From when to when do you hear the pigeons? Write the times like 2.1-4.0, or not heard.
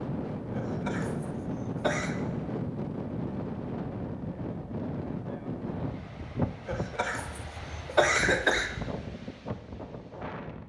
not heard.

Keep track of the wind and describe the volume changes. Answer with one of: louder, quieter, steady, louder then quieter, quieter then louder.
quieter.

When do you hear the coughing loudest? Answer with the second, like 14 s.
8 s.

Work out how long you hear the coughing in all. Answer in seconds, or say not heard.
4 s.